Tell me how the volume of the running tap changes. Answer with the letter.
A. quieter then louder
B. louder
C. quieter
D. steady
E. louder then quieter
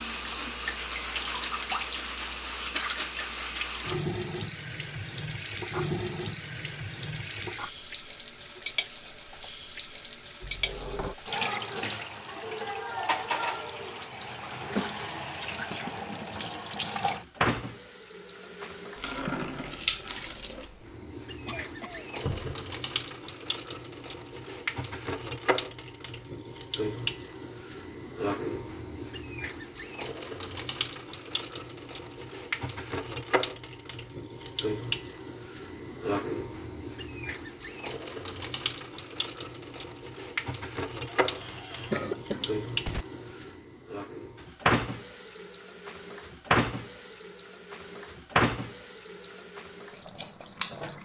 D.